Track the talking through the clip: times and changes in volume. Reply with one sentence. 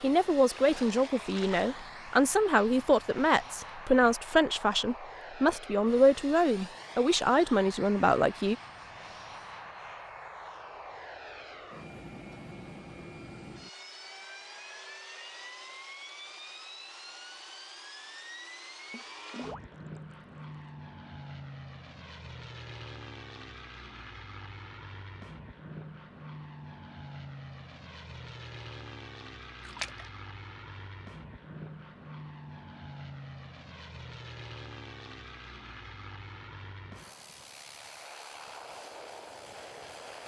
The talking can be heard from 0.0 to 8.6 s, at a steady volume.